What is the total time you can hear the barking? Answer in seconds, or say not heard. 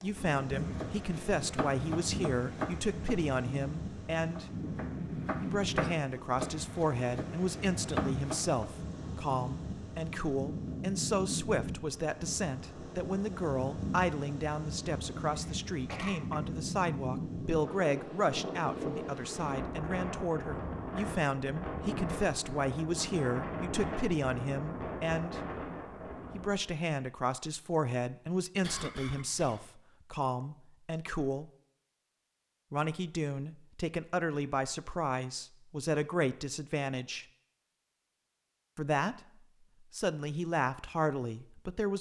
not heard.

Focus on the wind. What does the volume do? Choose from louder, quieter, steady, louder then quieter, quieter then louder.
steady.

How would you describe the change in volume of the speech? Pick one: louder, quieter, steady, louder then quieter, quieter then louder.
steady.